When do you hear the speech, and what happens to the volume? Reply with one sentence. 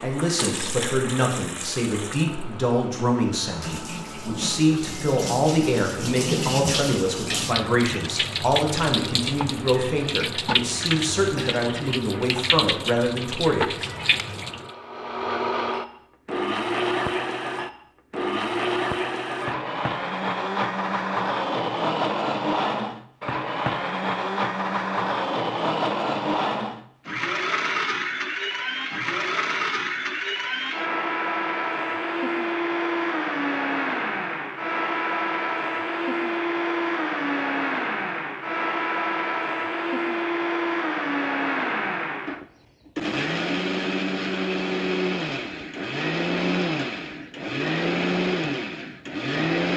The speech can be heard from 0.0 to 13.9 s, at a steady volume.